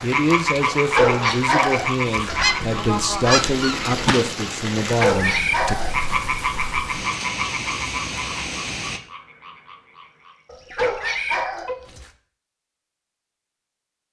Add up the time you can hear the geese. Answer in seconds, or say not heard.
2 s.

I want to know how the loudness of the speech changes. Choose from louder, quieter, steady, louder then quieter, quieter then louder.
steady.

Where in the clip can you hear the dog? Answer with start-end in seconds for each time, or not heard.
0.7-2.3, 4.9-6.0, 10.5-12.1.